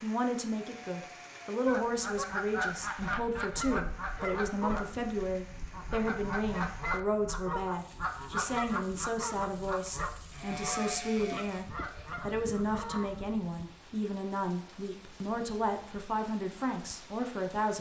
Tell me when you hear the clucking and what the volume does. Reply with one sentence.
You can hear the clucking from 1.6 to 13.3 s, getting quieter.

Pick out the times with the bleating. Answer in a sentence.
The bleating can be heard from 0.5 to 1.6 s and from 10.3 to 12.1 s.